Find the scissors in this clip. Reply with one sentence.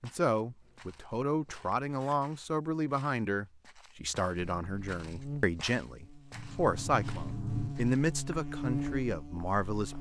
The scissors can be heard from 0.6 to 2.2 s and from 6.3 to 7.8 s.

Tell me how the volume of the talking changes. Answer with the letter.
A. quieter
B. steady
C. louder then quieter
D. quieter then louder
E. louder
B.